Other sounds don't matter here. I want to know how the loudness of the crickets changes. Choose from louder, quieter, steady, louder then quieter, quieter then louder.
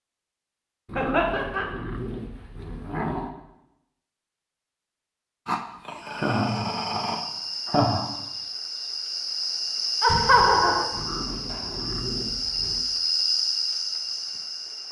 louder.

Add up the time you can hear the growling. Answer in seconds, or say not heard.
6 s.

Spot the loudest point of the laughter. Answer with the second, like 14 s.
10 s.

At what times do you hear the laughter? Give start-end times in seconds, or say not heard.
0.9-1.6, 6.0-8.1, 10.0-10.8.